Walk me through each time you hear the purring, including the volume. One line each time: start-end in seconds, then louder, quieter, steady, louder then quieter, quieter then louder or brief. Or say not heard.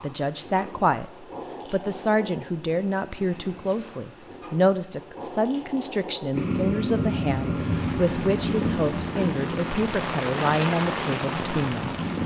6.3-12.2 quieter.